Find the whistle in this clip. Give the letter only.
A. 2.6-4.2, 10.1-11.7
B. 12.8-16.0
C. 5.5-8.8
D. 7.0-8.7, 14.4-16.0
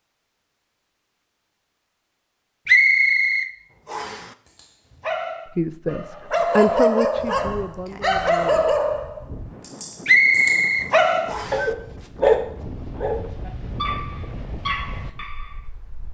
A.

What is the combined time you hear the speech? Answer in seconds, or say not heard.
3 s.